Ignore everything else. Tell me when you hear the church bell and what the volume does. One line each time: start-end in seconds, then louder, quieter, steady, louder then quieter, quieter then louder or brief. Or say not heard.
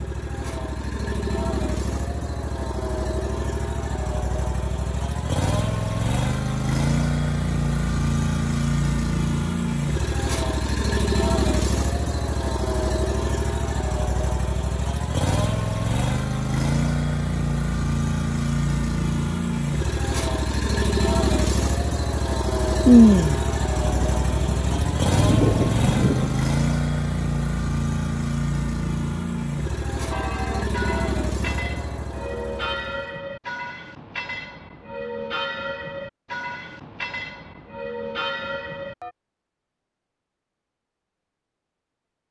30.1-39.1 steady.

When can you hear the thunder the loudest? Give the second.
23 s.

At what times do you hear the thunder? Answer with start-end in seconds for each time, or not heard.
22.9-26.4.